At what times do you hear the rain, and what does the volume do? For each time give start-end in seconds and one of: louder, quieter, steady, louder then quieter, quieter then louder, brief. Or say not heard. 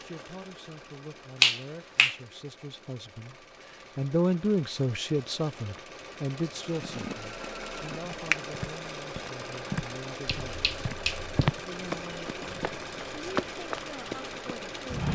not heard.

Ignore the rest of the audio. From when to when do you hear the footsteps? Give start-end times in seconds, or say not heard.
6.7-15.1.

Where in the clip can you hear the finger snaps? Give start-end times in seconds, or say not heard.
1.4-2.1, 10.2-11.6.